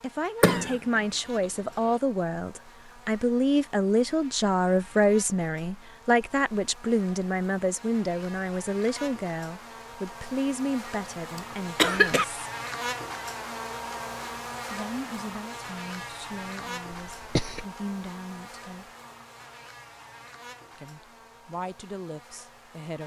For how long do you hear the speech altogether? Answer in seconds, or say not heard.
19 s.